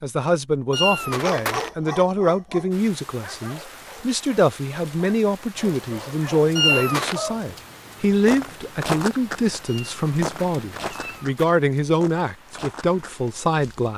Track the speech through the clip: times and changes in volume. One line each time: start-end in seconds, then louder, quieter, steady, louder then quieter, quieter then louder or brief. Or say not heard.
0.0-13.9 steady.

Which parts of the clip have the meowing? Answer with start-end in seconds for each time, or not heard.
0.7-1.7, 6.5-7.2, 9.7-11.6.